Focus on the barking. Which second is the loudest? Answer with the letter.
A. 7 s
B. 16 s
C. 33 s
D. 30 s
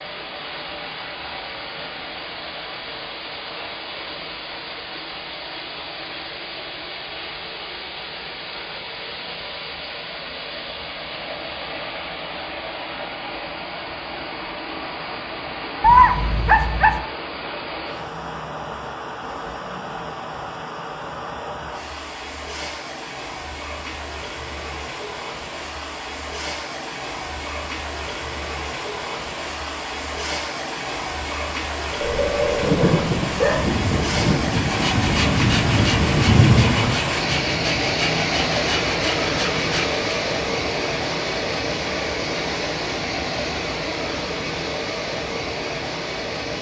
B.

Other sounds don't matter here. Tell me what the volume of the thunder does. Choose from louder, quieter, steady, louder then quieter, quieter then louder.
louder.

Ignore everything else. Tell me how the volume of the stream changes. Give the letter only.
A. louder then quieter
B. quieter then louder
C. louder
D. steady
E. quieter
C.